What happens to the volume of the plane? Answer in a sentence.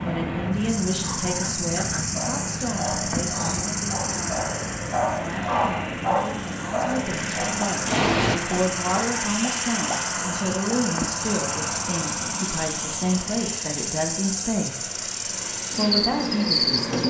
The loudness of the plane goes down.